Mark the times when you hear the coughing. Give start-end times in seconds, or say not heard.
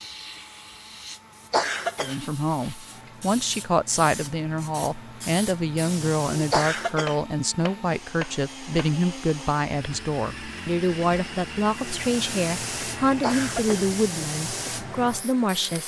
1.5-2.3, 6.5-7.3, 13.2-13.9.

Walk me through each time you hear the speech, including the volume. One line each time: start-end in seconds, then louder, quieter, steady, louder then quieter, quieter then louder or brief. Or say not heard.
2.0-15.8 steady.